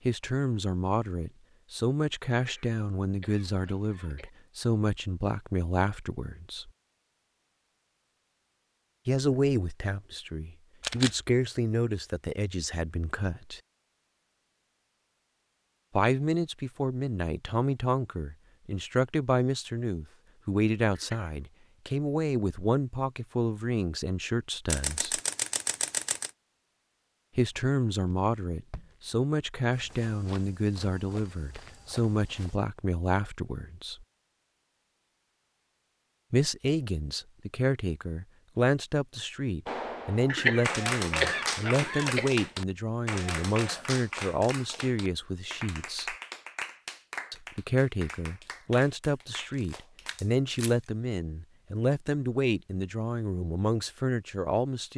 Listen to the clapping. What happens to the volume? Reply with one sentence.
The loudness of the clapping goes down.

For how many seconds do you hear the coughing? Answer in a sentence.
The coughing can be heard for 5 seconds in total.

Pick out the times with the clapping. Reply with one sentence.
The clapping can be heard from 39.6 to 50.4 s.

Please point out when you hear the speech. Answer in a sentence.
The speech can be heard from 0.1 to 6.7 s, from 9.1 to 13.6 s, from 15.9 to 25.2 s, from 27.4 to 34.0 s, from 36.3 to 46.1 s and from 47.3 to 54.9 s.